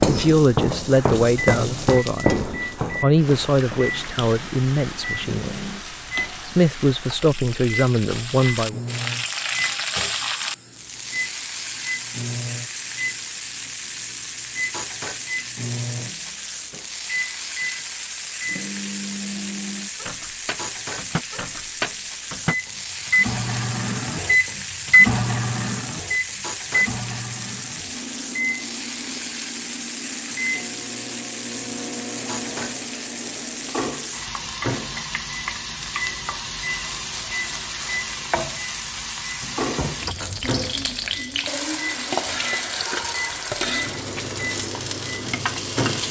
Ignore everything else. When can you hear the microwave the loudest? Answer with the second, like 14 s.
25 s.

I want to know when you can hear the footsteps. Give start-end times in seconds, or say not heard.
0.0-4.0.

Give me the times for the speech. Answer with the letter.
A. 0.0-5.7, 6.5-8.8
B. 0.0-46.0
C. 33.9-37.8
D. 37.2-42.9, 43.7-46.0
A.